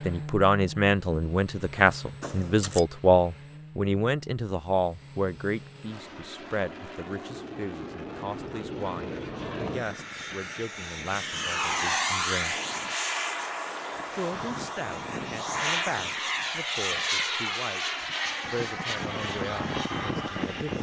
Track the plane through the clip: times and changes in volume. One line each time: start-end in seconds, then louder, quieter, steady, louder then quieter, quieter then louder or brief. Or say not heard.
0.0-20.7 louder.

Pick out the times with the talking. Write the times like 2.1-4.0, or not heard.
0.1-12.6, 14.1-17.8, 18.4-20.7.